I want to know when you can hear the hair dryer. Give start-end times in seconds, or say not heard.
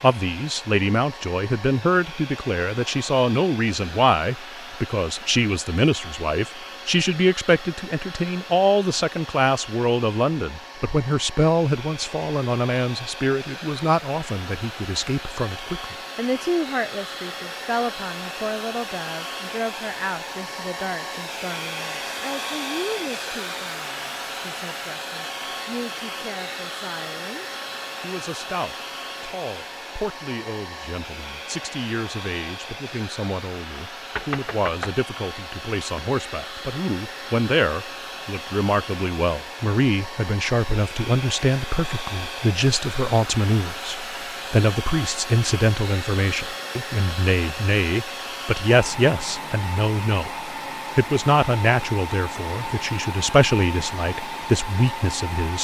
0.0-55.6.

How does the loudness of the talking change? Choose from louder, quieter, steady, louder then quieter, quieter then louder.
quieter then louder.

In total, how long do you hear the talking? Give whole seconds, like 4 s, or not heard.
55 s.